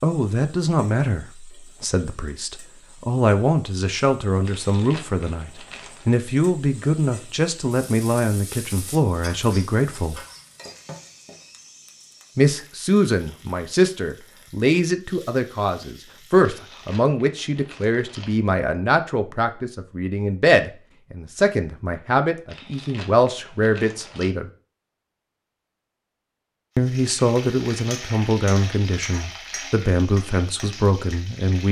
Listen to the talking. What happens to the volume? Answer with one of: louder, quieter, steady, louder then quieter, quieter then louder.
steady.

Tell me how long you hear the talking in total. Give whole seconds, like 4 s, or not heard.
27 s.